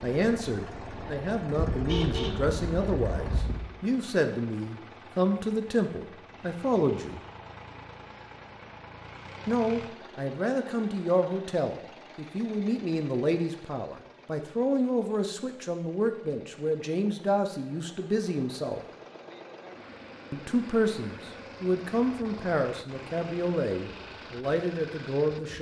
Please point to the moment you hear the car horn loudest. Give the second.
2 s.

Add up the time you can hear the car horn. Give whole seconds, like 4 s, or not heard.
2 s.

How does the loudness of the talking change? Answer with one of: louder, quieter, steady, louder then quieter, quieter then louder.
steady.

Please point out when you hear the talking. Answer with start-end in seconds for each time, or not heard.
0.0-7.2, 9.4-18.8, 20.3-25.5.